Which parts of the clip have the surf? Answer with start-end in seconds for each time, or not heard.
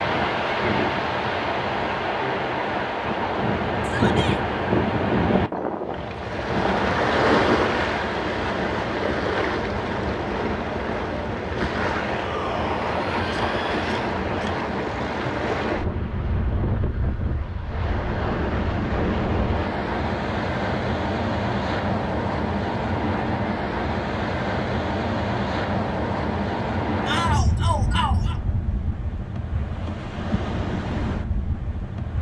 0.0-32.1.